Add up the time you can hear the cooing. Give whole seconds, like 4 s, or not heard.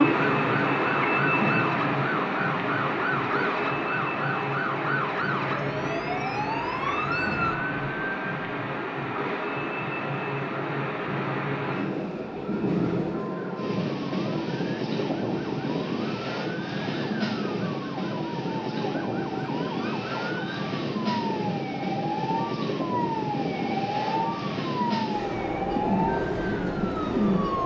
2 s.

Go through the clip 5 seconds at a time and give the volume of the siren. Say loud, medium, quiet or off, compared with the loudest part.
loud, loud, quiet, medium, loud, loud.